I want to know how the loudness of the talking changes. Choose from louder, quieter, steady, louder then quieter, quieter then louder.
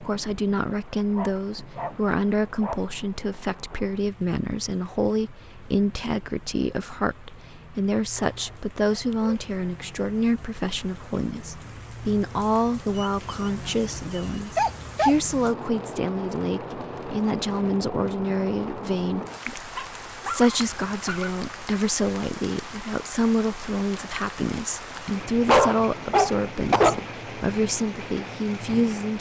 steady.